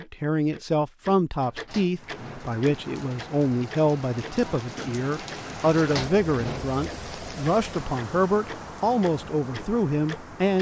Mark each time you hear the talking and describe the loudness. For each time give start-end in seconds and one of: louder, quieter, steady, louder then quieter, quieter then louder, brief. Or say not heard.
0.0-10.5 steady.